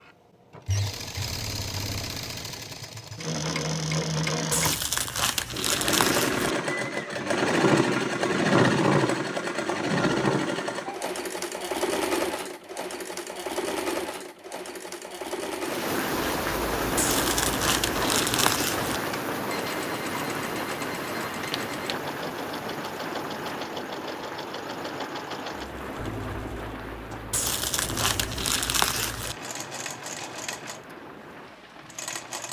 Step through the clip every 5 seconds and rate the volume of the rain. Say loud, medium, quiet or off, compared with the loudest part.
off, off, off, loud, medium, medium, quiet.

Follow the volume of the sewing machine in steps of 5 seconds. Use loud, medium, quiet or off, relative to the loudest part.
medium, loud, medium, medium, quiet, quiet, quiet.